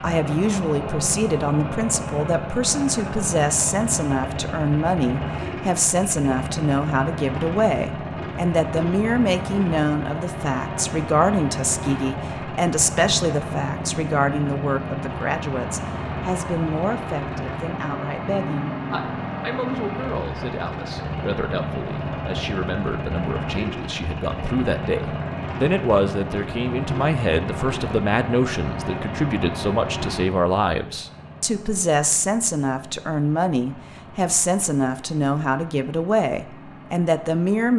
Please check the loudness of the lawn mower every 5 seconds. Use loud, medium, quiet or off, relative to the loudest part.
loud, loud, loud, loud, loud, loud, medium, quiet.